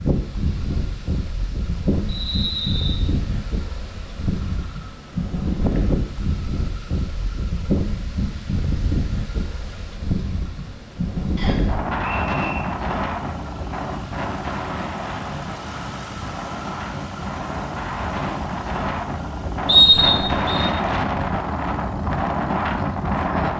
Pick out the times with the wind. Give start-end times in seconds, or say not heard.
0.0-23.5.